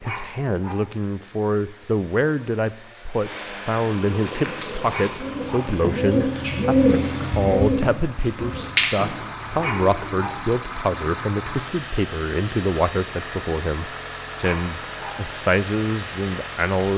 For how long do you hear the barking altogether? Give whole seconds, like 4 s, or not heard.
3 s.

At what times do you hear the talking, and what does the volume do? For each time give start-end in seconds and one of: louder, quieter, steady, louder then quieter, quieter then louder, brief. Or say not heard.
0.0-16.9 steady.